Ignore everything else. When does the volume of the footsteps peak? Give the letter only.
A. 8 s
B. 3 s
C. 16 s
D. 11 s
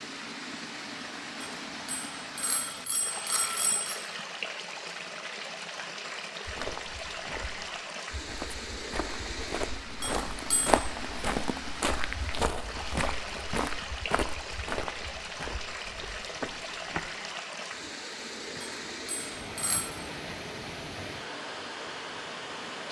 D.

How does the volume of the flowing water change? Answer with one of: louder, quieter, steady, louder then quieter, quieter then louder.
steady.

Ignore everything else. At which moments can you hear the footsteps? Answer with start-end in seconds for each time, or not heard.
6.5-17.1.